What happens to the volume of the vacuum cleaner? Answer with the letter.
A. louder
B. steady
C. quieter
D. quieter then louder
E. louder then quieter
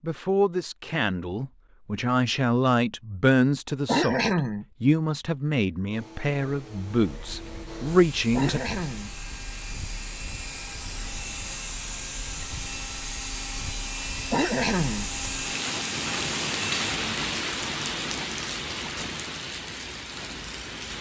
A.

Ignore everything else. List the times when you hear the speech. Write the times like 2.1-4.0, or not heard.
0.0-8.6.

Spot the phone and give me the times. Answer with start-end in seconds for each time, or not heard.
not heard.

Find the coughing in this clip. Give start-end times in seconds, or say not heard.
3.9-4.7, 8.3-9.1, 14.3-15.1.